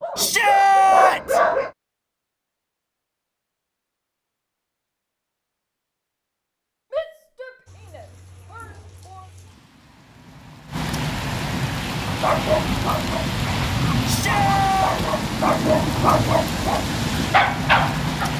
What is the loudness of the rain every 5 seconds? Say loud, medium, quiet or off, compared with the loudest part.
off, quiet, loud, loud.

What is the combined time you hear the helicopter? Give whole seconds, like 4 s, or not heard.
not heard.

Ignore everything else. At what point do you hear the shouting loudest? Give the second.
1 s.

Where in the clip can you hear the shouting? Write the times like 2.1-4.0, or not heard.
0.1-1.4, 6.9-9.2, 14.1-15.0.